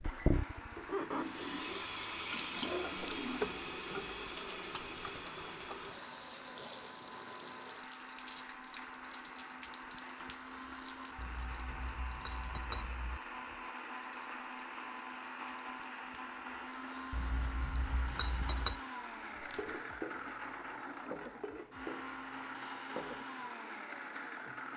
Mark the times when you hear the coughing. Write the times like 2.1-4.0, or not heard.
not heard.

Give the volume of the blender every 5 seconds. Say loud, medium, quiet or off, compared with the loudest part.
medium, medium, loud, loud, loud.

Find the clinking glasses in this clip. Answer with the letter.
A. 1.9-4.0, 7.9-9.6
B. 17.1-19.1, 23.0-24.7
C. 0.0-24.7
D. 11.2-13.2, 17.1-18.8
D.